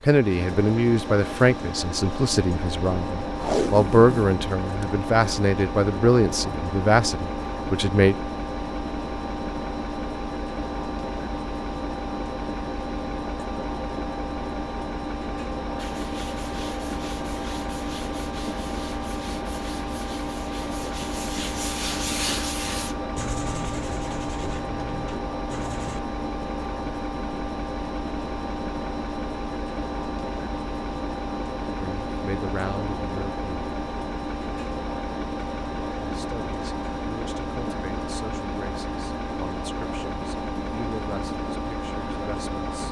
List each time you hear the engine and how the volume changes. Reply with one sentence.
You can hear the engine from 0.0 to 42.8 s, at a steady volume.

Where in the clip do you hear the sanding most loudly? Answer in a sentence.
The loudest moment of the sanding is at 22 seconds.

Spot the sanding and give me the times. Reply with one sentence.
The sanding can be heard from 15.8 to 26.0 s.